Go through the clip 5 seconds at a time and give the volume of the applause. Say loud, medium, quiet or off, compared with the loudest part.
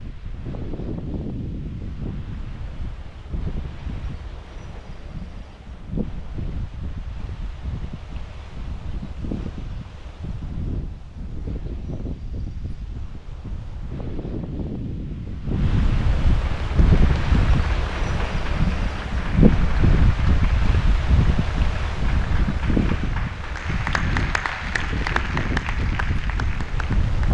off, off, off, medium, loud, loud.